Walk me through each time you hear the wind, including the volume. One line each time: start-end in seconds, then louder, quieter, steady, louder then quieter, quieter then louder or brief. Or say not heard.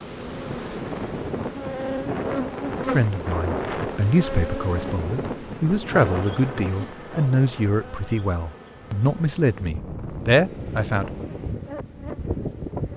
0.0-12.9 quieter then louder.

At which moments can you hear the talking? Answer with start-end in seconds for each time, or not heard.
2.8-11.1.